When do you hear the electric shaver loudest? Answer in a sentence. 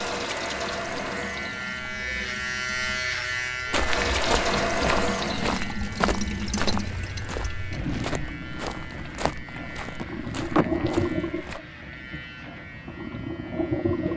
The volume of the electric shaver peaks at 3 seconds.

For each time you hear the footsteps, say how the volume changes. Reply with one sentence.
You can hear the footsteps from 3.7 to 11.6 s, getting quieter.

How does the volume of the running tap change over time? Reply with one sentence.
The volume of the running tap goes up, then down.